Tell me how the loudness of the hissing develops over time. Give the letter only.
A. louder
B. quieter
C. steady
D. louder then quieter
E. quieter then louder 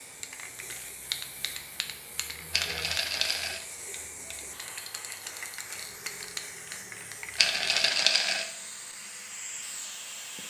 C.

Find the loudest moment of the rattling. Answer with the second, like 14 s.
8 s.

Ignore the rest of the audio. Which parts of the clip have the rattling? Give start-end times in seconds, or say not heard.
2.5-3.6, 7.3-8.4.